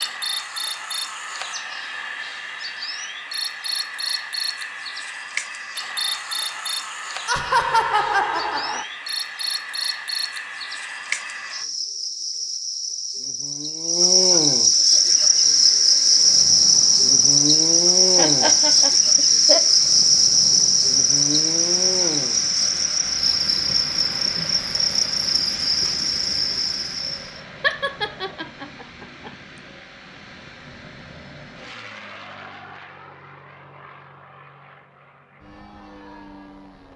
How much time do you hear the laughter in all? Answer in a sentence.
You can hear the laughter for 5 seconds altogether.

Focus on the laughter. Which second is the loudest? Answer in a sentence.
The volume of the laughter peaks at 8 seconds.